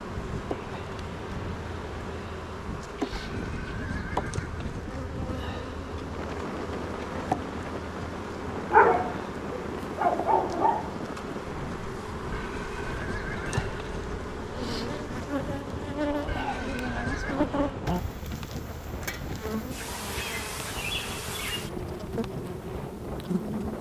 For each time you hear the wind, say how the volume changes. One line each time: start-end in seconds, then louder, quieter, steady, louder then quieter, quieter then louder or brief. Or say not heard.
0.0-23.7 steady.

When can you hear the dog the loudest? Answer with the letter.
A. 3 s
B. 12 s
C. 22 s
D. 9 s
D.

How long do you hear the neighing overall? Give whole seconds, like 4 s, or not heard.
5 s.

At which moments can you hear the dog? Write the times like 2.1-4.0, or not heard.
8.7-10.9.